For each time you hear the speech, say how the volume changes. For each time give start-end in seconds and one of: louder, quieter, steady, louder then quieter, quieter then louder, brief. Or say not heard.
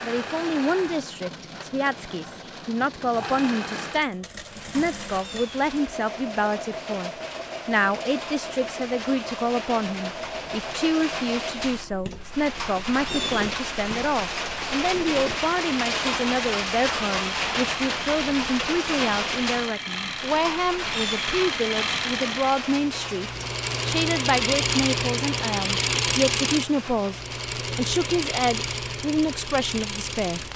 0.0-30.5 steady.